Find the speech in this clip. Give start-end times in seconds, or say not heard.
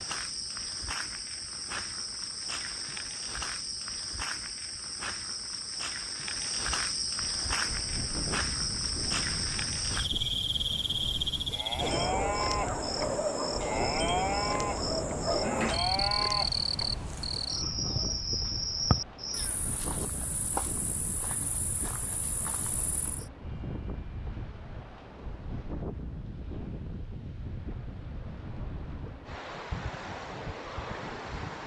not heard.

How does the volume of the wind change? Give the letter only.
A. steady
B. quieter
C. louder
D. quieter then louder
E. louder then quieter
A.